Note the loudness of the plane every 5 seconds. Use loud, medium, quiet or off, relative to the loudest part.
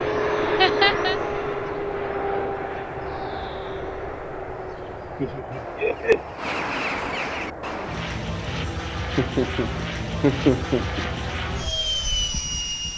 loud, medium, loud.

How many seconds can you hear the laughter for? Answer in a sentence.
The laughter can be heard for 4 seconds in total.